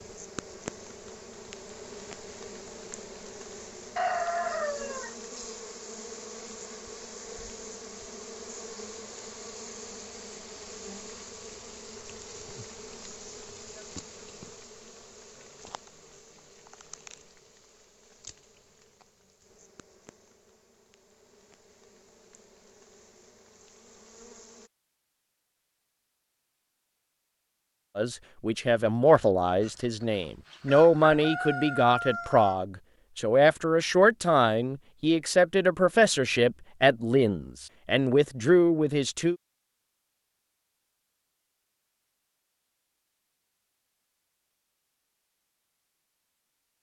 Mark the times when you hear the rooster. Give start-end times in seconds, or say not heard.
4.0-5.5, 29.6-32.5.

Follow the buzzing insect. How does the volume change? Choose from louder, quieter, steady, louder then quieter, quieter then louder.
quieter.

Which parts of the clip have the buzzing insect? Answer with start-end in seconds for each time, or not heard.
0.0-24.7.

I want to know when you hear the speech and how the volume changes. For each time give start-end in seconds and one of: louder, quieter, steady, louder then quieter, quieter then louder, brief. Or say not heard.
27.9-39.4 steady.